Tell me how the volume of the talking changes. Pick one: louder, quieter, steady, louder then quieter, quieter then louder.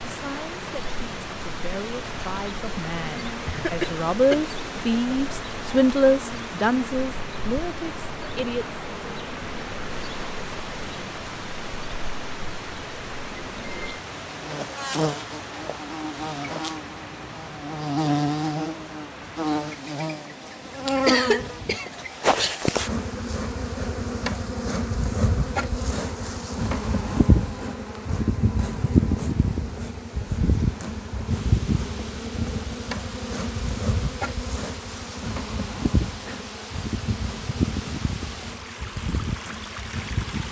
louder then quieter.